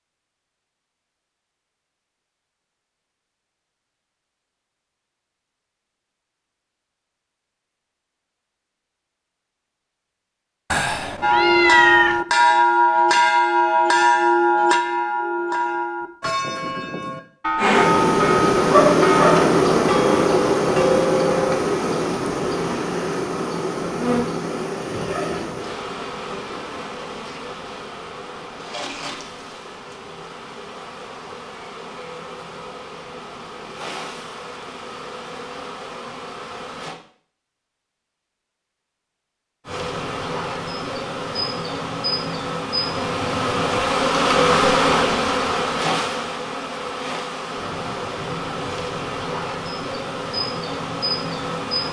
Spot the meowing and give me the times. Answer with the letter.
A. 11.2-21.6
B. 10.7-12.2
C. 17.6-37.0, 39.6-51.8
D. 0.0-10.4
B.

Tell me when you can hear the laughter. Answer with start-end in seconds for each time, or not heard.
not heard.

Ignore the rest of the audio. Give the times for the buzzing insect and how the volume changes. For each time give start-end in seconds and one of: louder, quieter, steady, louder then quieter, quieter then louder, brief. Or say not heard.
17.6-37.0 quieter
39.6-51.8 louder then quieter.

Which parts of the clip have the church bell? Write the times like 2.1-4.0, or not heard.
11.2-21.6.